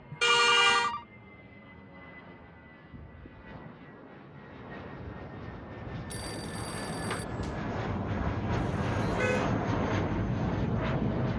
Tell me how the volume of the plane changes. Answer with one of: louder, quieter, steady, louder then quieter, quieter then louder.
louder.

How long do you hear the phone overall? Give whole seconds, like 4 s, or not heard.
2 s.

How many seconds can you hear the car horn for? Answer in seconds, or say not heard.
2 s.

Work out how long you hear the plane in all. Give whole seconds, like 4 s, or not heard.
11 s.